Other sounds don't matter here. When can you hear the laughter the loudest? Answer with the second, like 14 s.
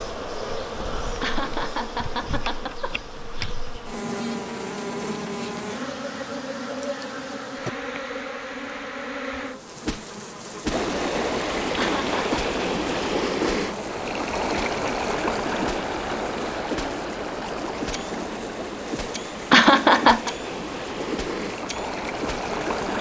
20 s.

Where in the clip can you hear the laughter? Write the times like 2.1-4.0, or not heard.
1.2-3.5, 11.8-12.4, 19.5-20.3.